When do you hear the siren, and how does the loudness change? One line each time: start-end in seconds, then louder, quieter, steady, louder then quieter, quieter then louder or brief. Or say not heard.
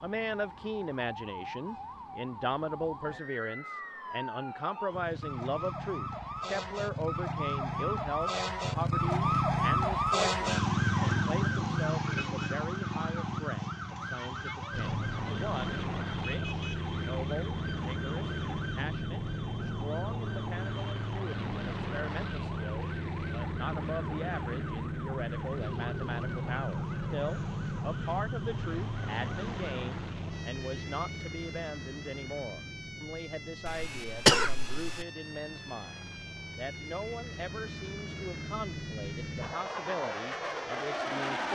0.0-41.5 louder then quieter.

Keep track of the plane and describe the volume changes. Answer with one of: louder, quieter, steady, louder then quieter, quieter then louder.
quieter then louder.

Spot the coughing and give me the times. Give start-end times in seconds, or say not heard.
33.6-35.0.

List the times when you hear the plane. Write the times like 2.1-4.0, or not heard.
14.7-41.5.